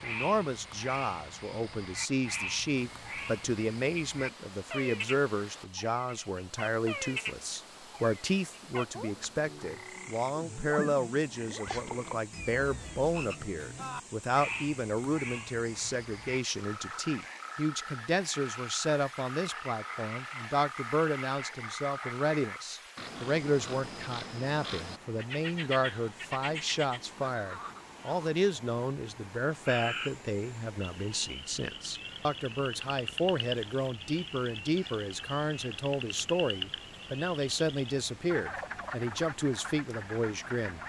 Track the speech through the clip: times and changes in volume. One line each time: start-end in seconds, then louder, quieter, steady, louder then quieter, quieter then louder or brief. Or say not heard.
0.0-40.8 steady.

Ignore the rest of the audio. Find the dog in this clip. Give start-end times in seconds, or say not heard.
not heard.